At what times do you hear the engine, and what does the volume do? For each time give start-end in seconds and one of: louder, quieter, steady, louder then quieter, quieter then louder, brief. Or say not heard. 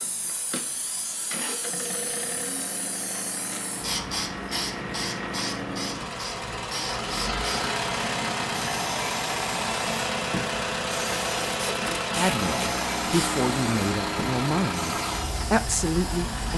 0.0-16.5 louder.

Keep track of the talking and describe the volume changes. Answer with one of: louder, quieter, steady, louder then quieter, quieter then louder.
quieter then louder.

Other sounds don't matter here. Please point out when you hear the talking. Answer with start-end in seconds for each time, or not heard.
12.1-16.5.